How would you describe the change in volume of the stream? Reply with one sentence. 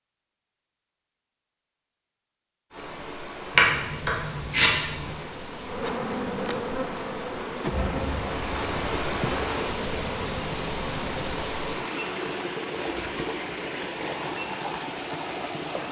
The volume of the stream goes up.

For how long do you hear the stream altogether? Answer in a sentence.
You can hear the stream for 13 seconds altogether.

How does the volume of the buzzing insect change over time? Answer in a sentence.
The volume of the buzzing insect goes down.